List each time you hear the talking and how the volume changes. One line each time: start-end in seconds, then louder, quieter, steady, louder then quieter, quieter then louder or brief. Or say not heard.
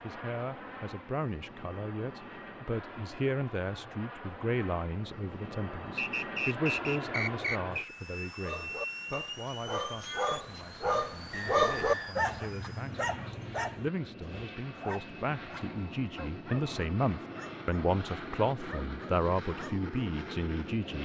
0.0-21.0 quieter then louder.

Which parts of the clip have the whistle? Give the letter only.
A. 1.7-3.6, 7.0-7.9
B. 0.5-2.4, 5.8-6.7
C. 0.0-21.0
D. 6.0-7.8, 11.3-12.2
D.